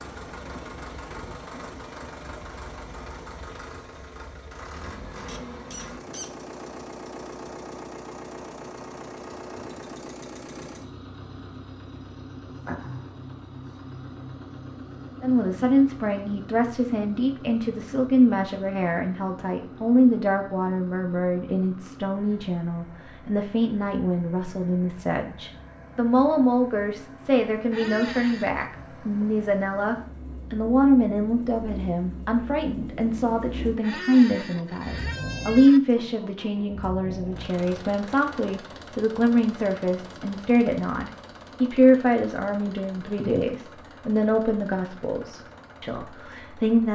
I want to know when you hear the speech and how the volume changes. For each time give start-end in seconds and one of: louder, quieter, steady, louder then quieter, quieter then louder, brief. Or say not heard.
15.2-46.9 steady.